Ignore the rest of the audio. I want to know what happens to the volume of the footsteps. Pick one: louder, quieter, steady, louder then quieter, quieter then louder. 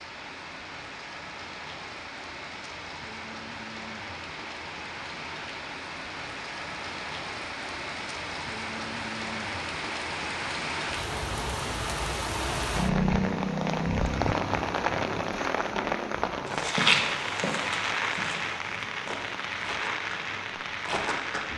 quieter then louder.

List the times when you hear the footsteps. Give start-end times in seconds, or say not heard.
16.4-21.5.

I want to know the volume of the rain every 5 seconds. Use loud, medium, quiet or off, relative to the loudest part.
medium, medium, loud, loud, medium.